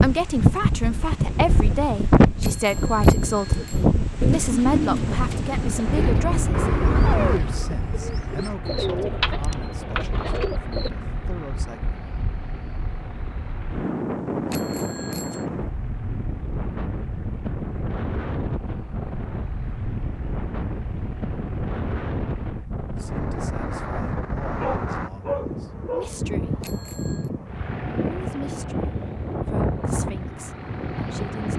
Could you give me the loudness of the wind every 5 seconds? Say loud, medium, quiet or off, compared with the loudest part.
loud, medium, medium, medium, medium, medium, medium.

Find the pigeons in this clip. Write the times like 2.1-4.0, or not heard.
2.7-10.9.